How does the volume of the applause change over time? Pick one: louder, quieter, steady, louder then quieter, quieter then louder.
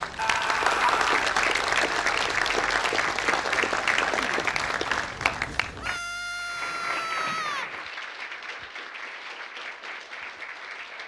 quieter.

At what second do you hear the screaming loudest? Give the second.
1 s.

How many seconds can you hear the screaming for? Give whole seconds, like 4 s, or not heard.
3 s.